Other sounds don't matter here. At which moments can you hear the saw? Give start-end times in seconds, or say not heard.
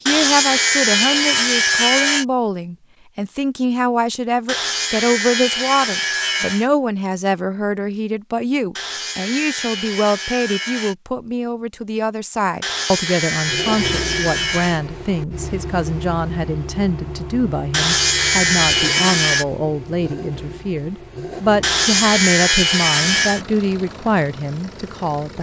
0.1-2.2, 4.5-6.7, 8.8-10.9, 12.6-14.8, 17.7-19.4, 21.6-23.4.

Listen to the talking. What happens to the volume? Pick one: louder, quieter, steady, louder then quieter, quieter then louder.
steady.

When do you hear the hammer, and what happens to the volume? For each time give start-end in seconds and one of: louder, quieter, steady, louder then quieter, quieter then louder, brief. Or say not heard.
not heard.